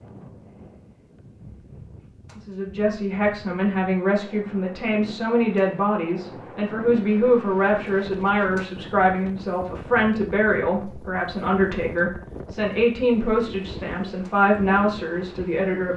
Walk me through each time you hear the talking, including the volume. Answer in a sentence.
The talking can be heard from 2.4 to 15.9 s, at a steady volume.